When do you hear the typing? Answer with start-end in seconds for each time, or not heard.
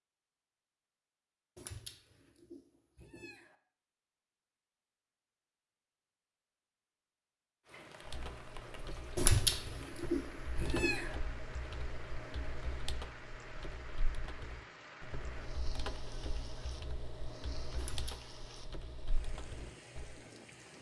8.1-20.2.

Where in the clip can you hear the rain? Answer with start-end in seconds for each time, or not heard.
7.7-20.7.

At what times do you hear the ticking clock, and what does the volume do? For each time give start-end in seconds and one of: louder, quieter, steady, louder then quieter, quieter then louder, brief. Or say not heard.
not heard.